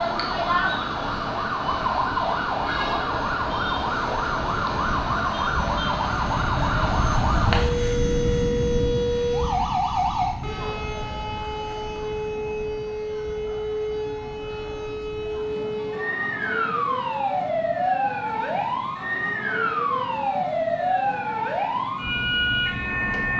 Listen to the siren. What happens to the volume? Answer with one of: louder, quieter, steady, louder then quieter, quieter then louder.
steady.